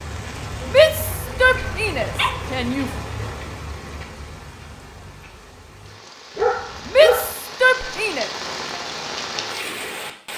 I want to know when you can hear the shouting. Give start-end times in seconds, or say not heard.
0.7-2.9, 6.8-8.3.